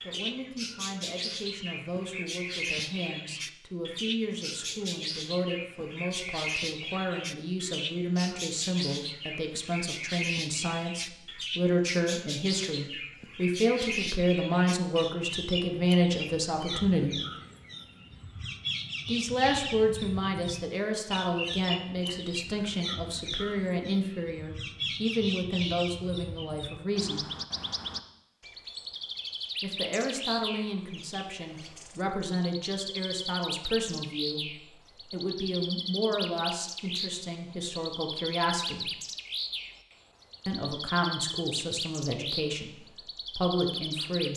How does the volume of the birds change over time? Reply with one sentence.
The volume of the birds stays about the same.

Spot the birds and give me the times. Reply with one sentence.
You can hear the birds from 0.0 to 44.3 s.